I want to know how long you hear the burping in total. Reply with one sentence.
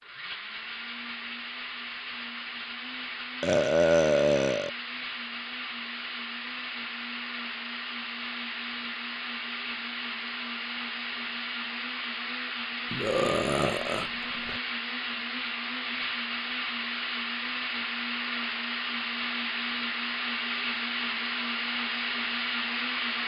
You can hear the burping for 3 seconds altogether.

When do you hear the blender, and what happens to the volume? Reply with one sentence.
The blender can be heard from 0.0 to 23.2 s, getting louder.